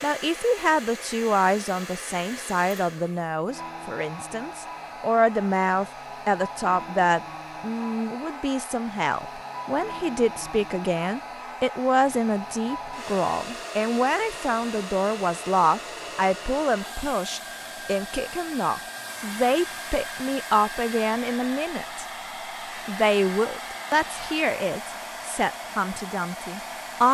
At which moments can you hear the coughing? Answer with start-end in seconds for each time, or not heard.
not heard.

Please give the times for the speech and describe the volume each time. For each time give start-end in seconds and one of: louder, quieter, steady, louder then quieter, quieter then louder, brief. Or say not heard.
0.0-22.1 steady
22.9-27.0 quieter.